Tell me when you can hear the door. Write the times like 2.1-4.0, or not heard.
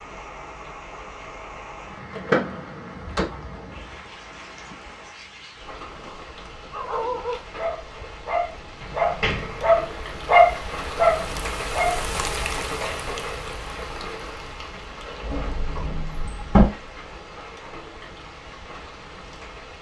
2.1-3.2, 8.8-10.0, 15.2-16.6.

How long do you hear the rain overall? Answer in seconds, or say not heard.
20 s.